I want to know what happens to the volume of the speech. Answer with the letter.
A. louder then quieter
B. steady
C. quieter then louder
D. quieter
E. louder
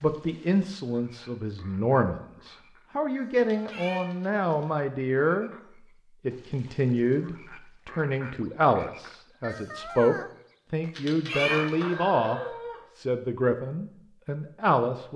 B.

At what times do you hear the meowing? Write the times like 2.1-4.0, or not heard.
3.4-4.7, 10.9-11.9.